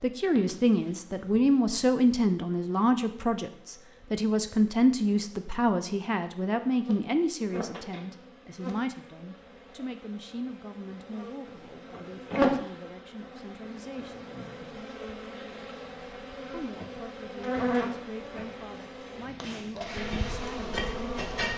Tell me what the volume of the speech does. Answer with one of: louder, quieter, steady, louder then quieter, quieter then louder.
quieter.